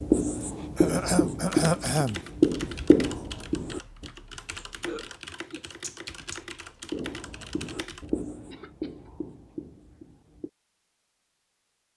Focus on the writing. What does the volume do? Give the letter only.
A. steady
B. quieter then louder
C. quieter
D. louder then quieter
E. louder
C.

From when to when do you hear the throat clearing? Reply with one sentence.
You can hear the throat clearing from 0.8 to 2.2 s, from 4.5 to 6.4 s and from 8.4 to 9.1 s.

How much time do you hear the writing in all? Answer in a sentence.
You can hear the writing for 8 seconds altogether.